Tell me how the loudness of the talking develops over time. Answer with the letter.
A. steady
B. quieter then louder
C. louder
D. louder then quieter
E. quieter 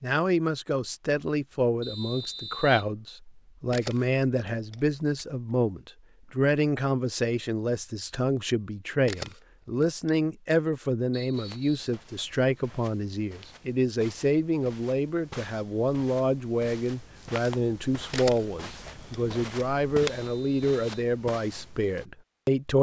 A.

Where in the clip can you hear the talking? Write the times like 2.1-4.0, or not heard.
0.0-22.7.